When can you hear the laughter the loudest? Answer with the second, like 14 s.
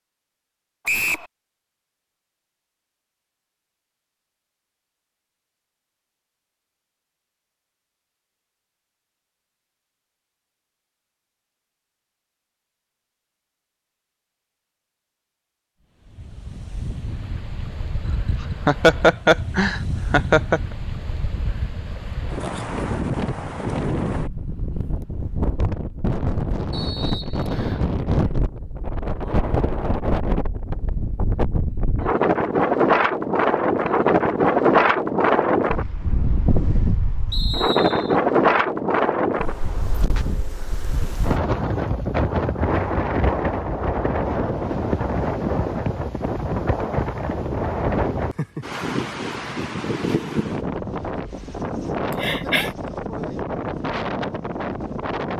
19 s.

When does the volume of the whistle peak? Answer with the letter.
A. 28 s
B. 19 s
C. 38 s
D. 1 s
D.